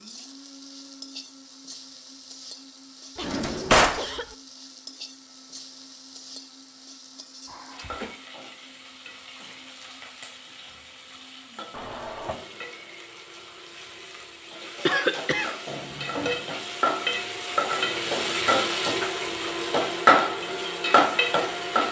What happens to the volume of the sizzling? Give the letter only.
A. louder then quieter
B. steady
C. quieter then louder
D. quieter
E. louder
E.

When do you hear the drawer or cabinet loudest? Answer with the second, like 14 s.
4 s.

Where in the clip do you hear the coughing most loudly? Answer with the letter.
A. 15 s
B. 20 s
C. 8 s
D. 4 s
A.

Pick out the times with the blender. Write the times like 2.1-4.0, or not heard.
0.0-21.8.